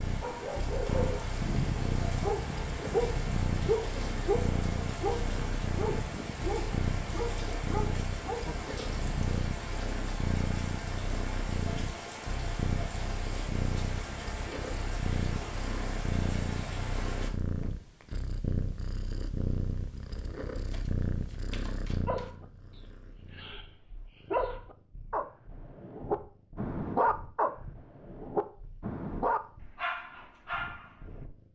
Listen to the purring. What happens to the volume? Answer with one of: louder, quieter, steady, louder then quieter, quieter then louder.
quieter.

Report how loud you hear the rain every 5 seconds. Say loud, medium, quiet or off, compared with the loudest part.
loud, loud, loud, loud, off, off, off.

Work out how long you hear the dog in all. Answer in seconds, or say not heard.
18 s.